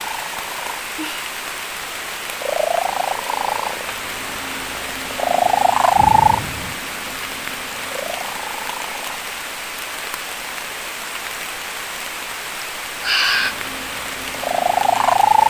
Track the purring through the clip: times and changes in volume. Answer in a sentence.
The purring can be heard from 0.0 to 9.3 s, getting louder then quieter; and briefly from 13.3 to 15.4 s.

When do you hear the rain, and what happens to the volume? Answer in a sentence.
You can hear the rain from 0.0 to 15.4 s, at a steady volume.